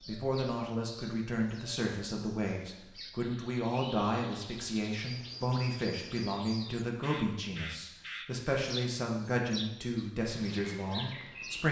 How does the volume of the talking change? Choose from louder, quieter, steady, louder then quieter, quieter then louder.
steady.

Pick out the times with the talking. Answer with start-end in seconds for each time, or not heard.
0.0-11.6.